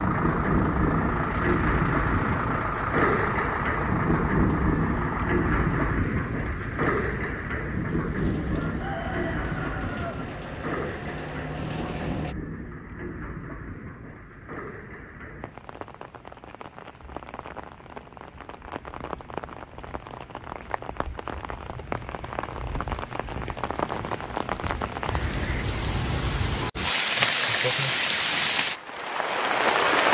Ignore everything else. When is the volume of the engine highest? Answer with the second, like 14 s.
3 s.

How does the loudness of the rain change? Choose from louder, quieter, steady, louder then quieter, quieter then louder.
quieter then louder.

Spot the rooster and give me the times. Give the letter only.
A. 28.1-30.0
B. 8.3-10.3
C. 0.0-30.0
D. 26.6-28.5
B.